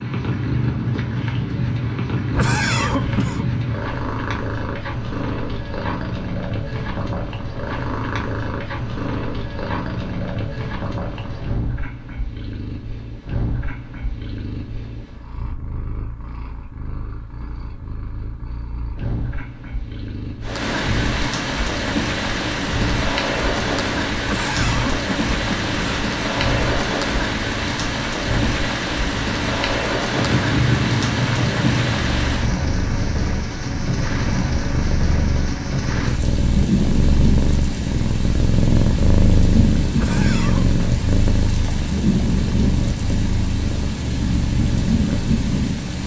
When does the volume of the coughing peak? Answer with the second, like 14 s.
3 s.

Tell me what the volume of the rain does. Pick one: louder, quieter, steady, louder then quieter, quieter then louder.
steady.